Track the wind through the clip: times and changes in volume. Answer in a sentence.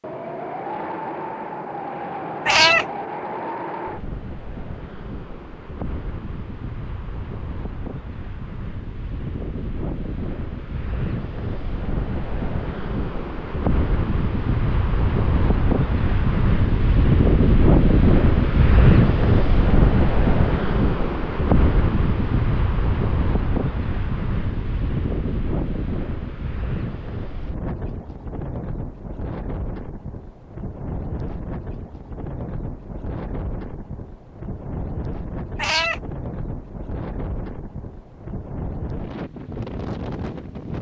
The wind can be heard from 0.0 to 40.7 s, getting louder then quieter.